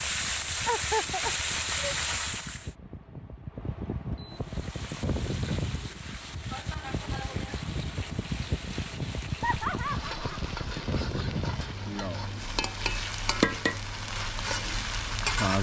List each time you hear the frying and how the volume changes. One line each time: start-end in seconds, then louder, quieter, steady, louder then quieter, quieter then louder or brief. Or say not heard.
0.0-2.7 brief
4.3-15.5 louder.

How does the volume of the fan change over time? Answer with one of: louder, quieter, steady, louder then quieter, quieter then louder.
louder then quieter.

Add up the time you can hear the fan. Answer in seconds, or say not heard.
15 s.